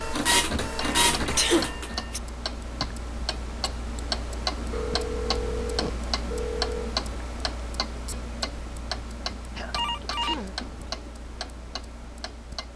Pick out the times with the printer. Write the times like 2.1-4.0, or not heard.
0.0-2.0.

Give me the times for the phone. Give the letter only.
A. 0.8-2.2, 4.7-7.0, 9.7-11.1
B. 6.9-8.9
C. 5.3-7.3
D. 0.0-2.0
A.